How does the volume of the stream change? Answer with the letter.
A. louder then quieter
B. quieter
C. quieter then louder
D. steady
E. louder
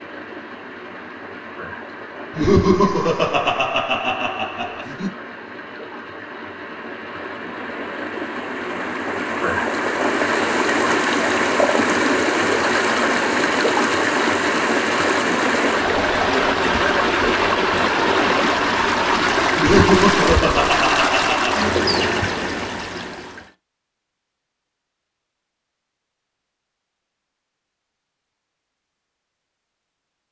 E.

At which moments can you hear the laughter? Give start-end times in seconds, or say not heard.
2.3-5.1, 19.6-21.6.